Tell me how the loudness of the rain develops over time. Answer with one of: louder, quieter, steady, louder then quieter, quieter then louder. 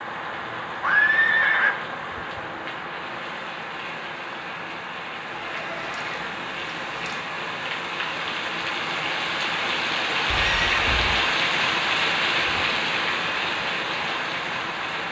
louder.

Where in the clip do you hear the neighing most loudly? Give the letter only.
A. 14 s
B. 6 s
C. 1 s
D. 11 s
C.